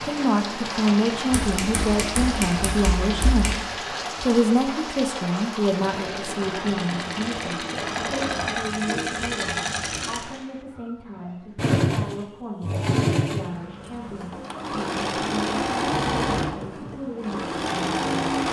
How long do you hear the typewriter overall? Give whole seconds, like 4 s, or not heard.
2 s.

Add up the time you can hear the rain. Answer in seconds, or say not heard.
10 s.